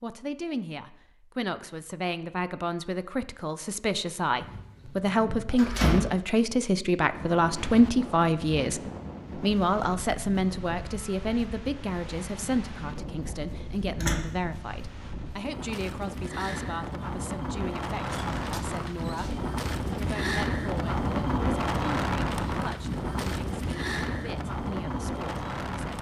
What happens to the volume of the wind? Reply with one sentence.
The loudness of the wind goes up.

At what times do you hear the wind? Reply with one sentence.
You can hear the wind from 7.1 to 25.9 s.